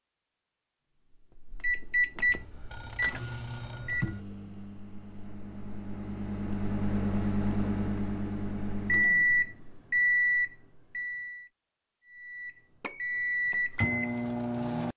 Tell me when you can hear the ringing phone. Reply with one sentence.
You can hear the ringing phone from 2.2 to 4.2 s and from 12.8 to 13.3 s.